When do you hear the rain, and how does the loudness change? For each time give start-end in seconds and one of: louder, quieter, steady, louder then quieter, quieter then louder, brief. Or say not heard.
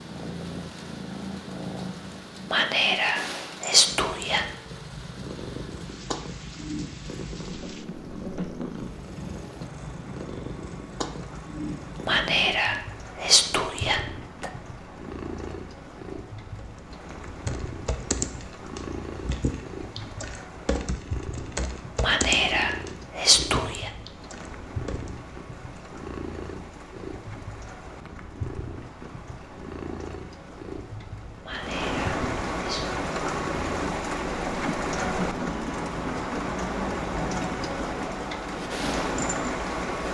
0.0-40.0 louder.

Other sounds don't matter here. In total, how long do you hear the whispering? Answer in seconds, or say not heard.
8 s.